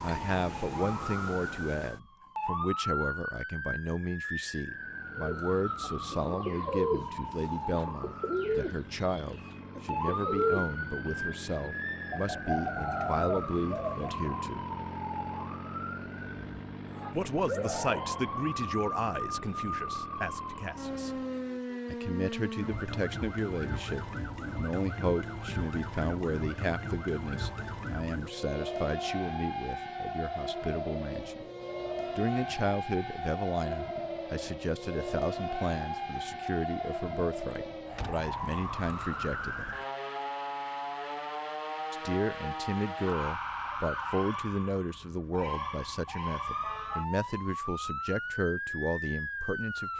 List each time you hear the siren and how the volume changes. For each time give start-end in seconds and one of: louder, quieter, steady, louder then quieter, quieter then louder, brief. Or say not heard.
0.0-49.9 steady.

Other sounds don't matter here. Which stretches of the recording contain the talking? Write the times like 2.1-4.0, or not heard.
0.0-14.7, 17.1-21.1, 21.9-31.4, 32.1-39.6, 41.9-49.9.